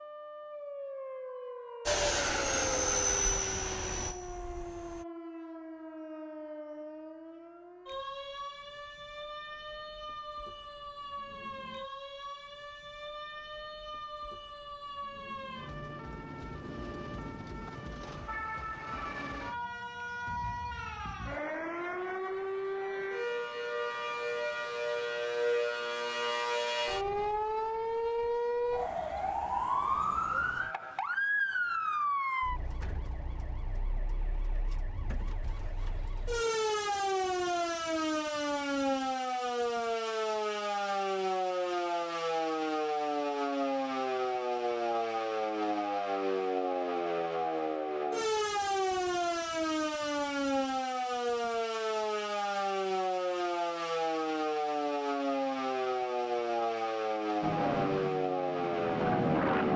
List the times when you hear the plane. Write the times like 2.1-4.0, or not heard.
1.9-5.0, 57.4-59.7.